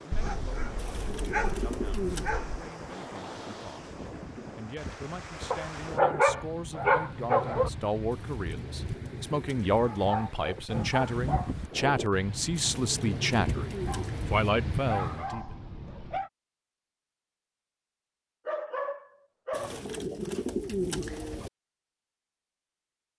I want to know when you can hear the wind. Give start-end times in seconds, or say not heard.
0.0-15.3.